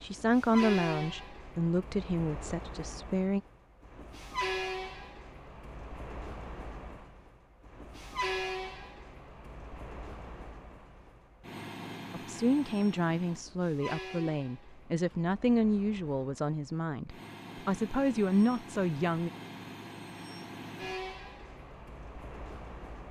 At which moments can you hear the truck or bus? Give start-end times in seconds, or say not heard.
0.0-23.0.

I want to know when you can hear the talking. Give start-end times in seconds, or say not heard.
0.0-3.4, 12.1-19.3.